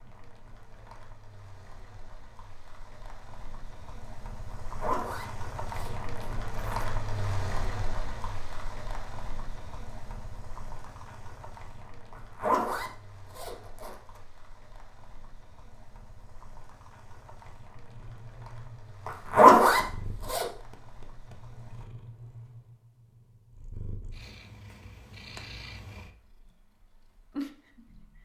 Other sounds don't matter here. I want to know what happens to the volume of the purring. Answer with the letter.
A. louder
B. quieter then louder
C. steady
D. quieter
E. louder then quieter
A.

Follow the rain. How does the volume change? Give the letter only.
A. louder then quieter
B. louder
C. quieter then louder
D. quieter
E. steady
A.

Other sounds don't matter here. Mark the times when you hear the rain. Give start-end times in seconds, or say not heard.
0.0-21.9.